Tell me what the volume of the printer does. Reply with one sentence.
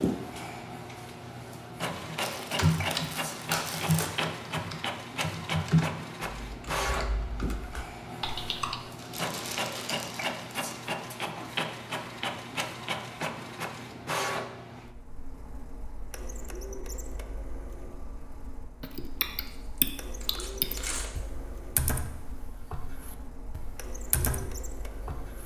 The loudness of the printer goes down.